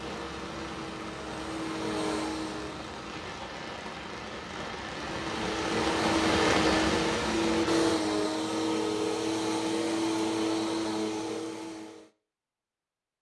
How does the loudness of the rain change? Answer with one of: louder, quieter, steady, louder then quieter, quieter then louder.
louder.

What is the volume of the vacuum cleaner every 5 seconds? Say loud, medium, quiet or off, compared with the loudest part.
medium, loud, loud.